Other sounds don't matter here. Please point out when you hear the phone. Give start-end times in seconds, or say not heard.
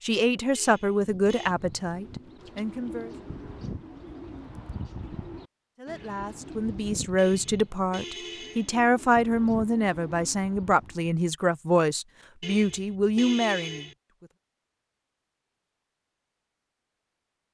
not heard.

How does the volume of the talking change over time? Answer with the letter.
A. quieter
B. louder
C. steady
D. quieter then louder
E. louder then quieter
D.